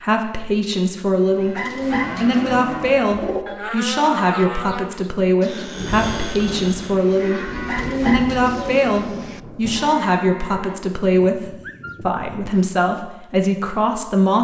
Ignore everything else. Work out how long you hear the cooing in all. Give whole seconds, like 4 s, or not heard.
4 s.